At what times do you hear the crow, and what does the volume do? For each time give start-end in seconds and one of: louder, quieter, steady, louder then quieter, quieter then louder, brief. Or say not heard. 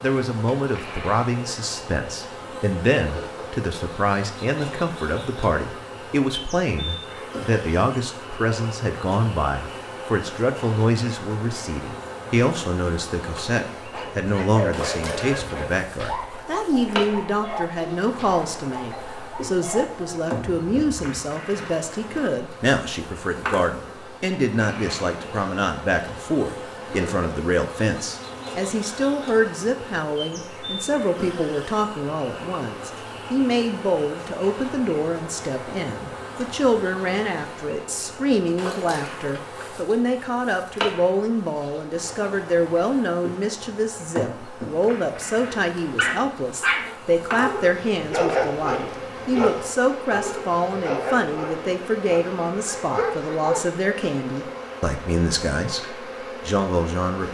not heard.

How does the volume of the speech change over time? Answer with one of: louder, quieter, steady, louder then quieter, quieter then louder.
steady.